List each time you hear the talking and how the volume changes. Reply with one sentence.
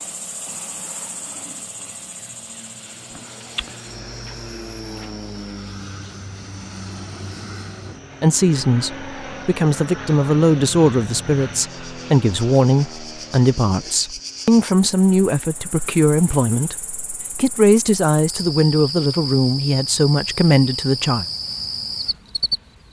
The talking can be heard from 8.2 to 21.2 s, at a steady volume.